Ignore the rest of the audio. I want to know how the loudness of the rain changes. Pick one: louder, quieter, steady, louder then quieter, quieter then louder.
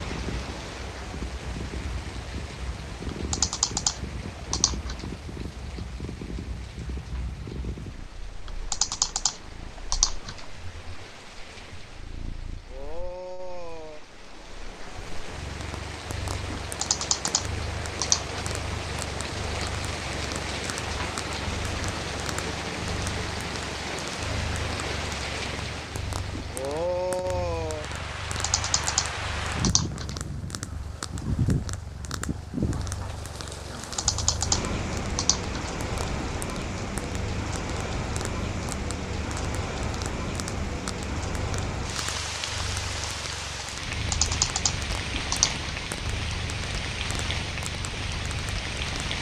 louder.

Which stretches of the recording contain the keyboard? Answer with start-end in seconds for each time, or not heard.
3.3-5.0, 8.4-10.4, 16.6-18.4, 28.2-30.1, 33.8-35.7, 44.1-45.7.